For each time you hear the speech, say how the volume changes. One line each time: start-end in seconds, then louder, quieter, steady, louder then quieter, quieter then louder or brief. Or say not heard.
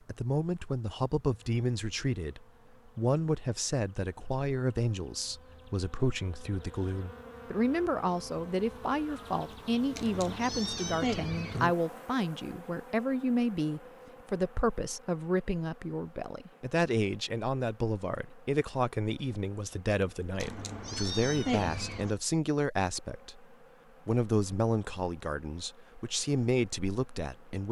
0.1-27.6 steady.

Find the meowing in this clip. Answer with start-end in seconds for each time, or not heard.
9.9-11.7, 20.4-22.1.